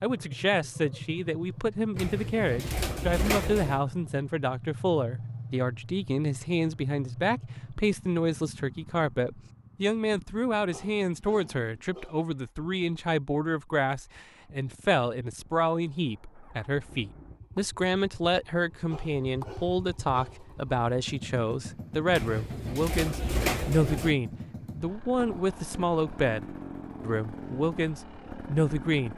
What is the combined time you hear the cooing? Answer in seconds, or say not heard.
4 s.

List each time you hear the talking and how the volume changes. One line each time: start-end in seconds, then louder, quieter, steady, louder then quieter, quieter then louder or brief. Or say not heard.
0.0-29.1 steady.